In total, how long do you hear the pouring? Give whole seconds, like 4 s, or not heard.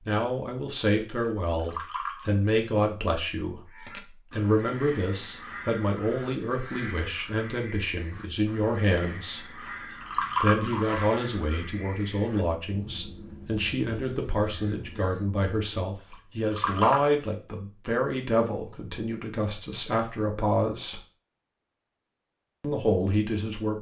4 s.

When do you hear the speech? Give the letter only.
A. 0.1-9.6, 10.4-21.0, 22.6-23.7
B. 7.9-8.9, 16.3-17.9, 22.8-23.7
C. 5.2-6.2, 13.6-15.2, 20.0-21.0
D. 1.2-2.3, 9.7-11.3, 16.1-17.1
A.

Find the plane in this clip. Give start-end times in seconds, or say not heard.
not heard.